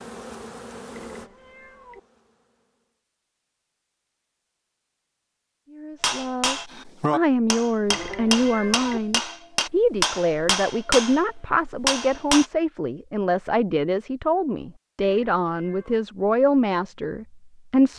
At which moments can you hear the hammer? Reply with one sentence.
The hammer can be heard from 6.0 to 12.4 s.